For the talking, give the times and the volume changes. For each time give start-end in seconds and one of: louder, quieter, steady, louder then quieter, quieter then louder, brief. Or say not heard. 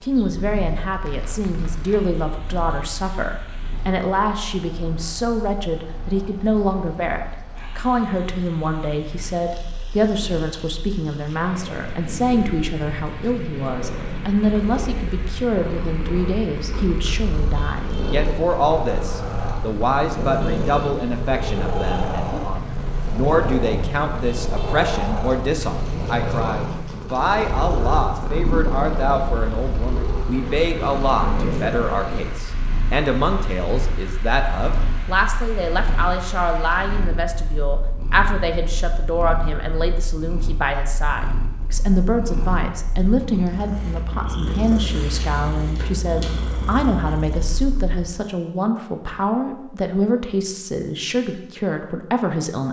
0.0-52.6 steady.